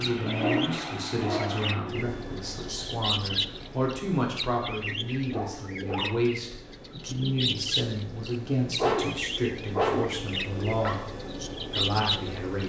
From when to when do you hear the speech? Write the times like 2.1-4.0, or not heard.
0.0-12.6.